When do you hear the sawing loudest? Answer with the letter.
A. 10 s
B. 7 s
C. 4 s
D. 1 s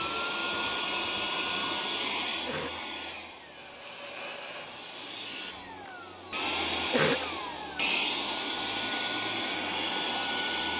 C.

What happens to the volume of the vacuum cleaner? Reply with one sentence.
The volume of the vacuum cleaner goes down, then up.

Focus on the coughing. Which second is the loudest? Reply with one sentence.
The loudest moment of the coughing is at 7 seconds.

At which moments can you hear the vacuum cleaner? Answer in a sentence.
You can hear the vacuum cleaner from 0.0 to 10.7 s.